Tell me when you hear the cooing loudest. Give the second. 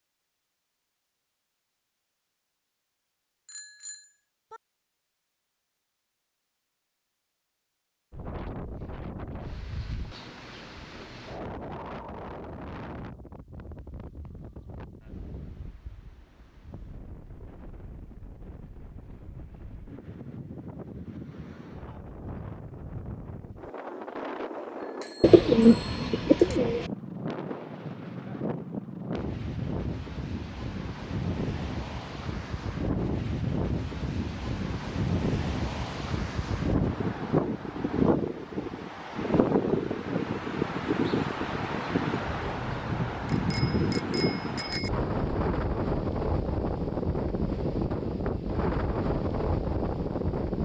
26 s.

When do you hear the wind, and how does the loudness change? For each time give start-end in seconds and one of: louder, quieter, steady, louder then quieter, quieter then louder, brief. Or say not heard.
8.1-50.6 louder.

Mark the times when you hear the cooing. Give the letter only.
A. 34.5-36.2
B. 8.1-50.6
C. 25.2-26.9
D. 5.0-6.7
C.